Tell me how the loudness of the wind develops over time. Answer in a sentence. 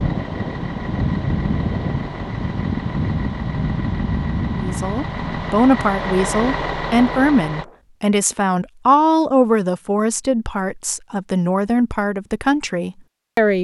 The volume of the wind goes down.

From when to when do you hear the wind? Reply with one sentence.
The wind can be heard from 0.0 to 7.8 s.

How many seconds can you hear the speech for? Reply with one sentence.
The speech can be heard for 9 seconds in total.